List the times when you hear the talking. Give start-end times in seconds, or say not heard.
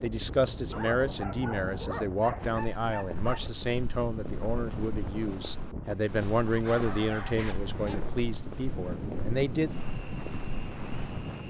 0.0-9.7.